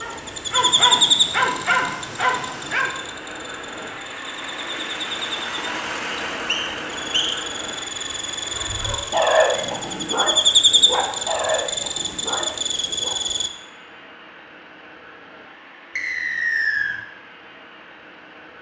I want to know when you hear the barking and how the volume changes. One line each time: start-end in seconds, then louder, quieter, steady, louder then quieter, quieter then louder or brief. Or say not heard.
0.0-3.0 brief
8.5-13.2 quieter.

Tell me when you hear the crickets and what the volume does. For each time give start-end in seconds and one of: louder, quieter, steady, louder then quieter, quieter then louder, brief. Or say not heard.
0.0-13.5 quieter then louder.